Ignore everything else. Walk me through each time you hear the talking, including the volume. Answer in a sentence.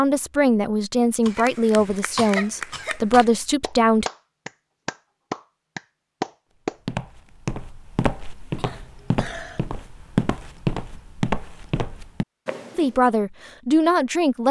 You can hear the talking from 0.0 to 4.0 s, getting quieter then louder; and briefly from 12.8 to 14.4 s.